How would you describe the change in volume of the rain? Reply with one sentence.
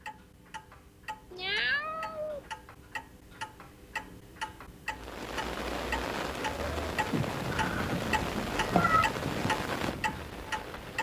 The volume of the rain stays about the same.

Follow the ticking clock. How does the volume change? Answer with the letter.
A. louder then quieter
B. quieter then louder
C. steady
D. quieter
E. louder
E.